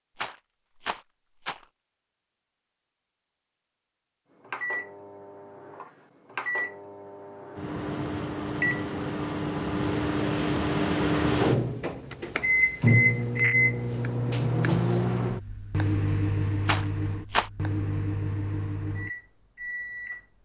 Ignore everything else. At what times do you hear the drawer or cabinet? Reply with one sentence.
The drawer or cabinet can't be heard in this clip.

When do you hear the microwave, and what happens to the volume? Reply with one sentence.
You can hear the microwave from 4.5 to 20.2 s, getting louder then quieter.